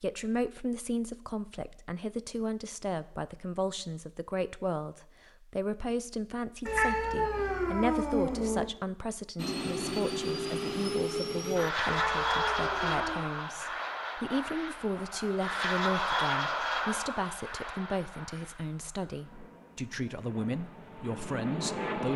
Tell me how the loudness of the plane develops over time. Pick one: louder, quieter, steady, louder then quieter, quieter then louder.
quieter.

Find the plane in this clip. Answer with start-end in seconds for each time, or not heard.
9.3-22.1.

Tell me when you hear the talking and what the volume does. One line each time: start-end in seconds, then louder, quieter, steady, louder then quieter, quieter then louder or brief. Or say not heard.
0.0-22.1 steady.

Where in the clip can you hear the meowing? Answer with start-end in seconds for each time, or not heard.
6.7-8.7, 11.8-13.3.